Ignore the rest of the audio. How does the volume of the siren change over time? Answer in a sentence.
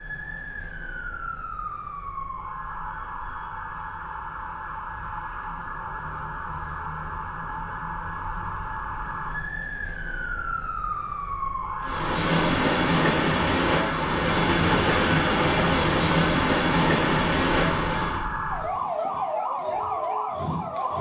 The volume of the siren goes up.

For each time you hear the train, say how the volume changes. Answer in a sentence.
You can hear the train from 11.8 to 18.2 s, at a steady volume.